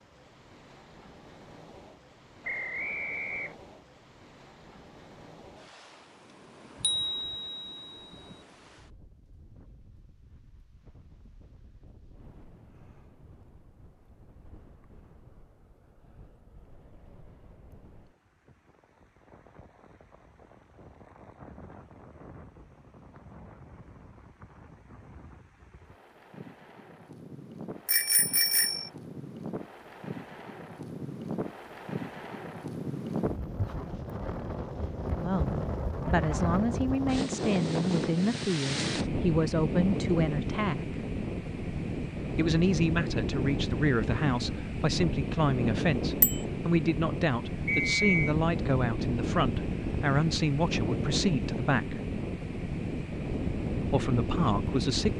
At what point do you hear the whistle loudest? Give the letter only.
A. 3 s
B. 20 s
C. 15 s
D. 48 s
D.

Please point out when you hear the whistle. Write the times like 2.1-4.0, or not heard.
2.4-3.5, 47.6-48.4.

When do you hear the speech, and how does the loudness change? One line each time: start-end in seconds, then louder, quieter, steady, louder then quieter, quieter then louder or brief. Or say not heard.
35.1-41.0 steady
42.4-52.0 steady
53.7-55.1 brief.